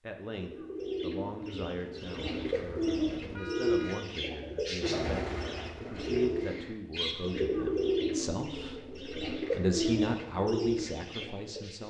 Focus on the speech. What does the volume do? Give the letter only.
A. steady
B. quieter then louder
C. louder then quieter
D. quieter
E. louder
E.